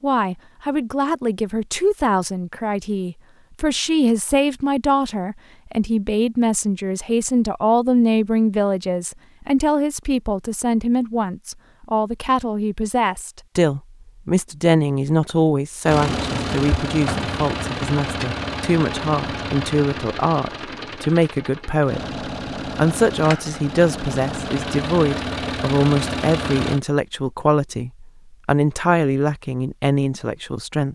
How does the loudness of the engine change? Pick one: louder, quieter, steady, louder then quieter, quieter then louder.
quieter then louder.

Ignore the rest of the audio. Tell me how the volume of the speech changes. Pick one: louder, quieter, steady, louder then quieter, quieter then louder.
steady.